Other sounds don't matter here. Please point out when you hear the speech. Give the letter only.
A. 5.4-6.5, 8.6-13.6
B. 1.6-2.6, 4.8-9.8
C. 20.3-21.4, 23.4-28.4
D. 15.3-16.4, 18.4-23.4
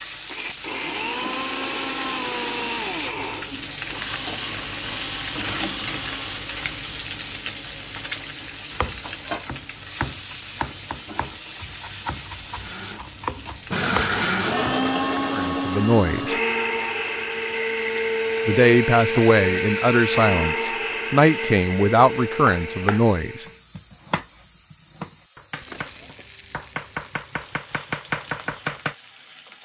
D.